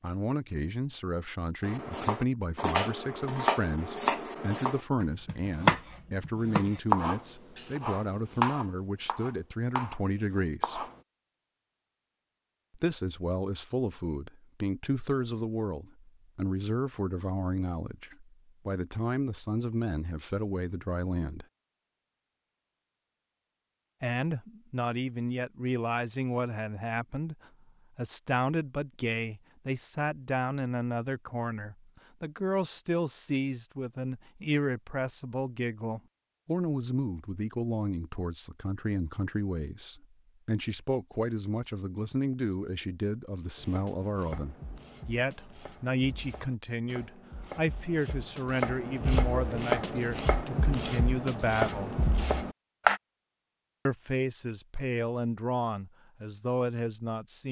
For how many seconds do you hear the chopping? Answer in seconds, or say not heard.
19 s.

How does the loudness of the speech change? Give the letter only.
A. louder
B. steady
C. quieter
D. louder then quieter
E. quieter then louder
B.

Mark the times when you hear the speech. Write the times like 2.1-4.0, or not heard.
0.0-10.8, 12.8-21.4, 24.0-27.4, 27.9-52.0, 53.9-57.4.